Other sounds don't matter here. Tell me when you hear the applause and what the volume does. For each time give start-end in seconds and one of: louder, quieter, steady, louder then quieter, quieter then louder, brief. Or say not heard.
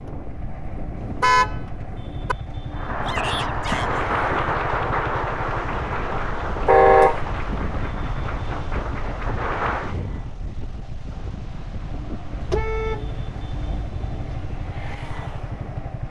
2.7-9.9 quieter.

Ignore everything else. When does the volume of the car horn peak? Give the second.
7 s.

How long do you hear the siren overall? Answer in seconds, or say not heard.
not heard.